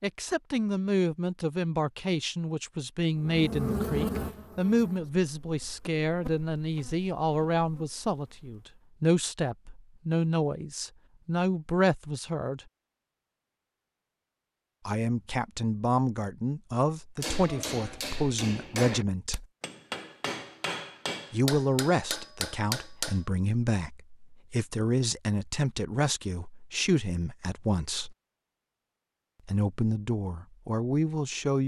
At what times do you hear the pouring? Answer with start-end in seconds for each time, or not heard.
not heard.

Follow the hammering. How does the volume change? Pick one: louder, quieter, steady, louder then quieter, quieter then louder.
steady.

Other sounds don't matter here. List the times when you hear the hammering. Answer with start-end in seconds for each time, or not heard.
17.2-23.2.